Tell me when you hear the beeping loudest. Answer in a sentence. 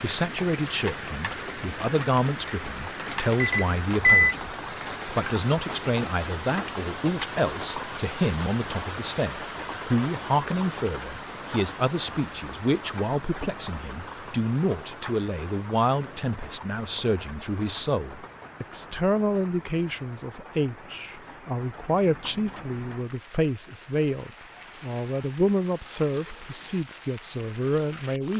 The loudest moment of the beeping is at 4 seconds.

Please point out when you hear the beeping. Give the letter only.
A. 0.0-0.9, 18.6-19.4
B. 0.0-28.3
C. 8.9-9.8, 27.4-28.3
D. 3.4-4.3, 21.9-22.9
D.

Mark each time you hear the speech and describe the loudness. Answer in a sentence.
You can hear the speech from 0.0 to 28.3 s, at a steady volume.